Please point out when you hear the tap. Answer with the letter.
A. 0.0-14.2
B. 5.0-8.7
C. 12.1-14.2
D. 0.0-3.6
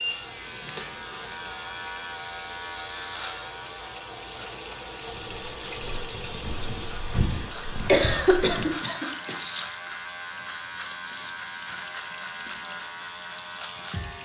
A.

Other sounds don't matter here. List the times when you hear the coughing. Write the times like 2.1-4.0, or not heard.
7.2-9.4.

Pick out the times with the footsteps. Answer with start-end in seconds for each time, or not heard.
5.0-8.7.